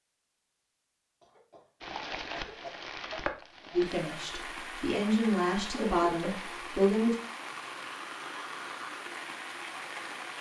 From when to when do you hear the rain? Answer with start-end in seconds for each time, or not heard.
1.8-10.3.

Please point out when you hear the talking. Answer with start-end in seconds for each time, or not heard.
3.7-7.2.